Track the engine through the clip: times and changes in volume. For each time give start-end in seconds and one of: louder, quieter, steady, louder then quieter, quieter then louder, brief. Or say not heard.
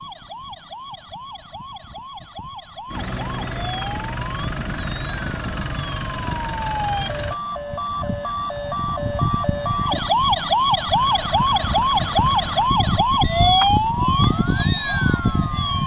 2.9-7.4 steady
10.9-12.7 brief.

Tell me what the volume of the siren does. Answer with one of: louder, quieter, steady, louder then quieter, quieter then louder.
louder.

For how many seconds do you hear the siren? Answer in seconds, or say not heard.
16 s.